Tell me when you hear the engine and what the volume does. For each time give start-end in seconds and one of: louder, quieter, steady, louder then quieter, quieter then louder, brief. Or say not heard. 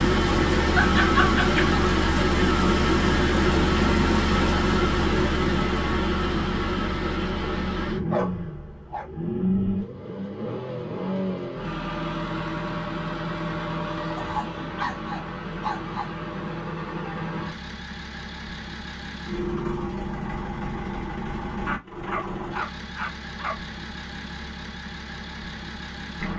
0.0-26.3 quieter.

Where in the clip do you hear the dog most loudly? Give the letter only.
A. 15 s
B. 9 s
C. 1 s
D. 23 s
C.